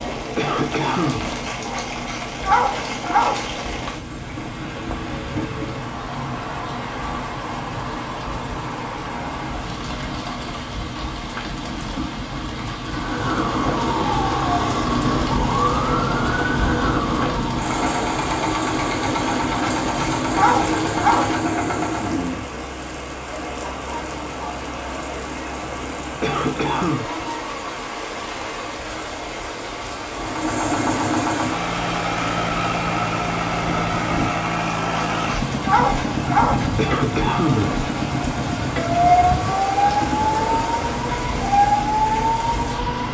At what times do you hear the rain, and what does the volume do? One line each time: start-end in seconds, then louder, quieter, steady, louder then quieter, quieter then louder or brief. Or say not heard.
0.0-43.0 steady.